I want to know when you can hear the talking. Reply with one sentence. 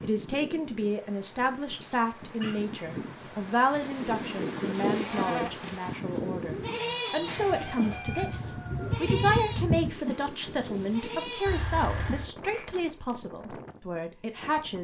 The talking can be heard from 0.0 to 14.7 s.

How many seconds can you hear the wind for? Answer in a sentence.
You can hear the wind for 15 seconds altogether.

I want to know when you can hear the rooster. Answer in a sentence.
You can hear the rooster from 7.3 to 9.9 s.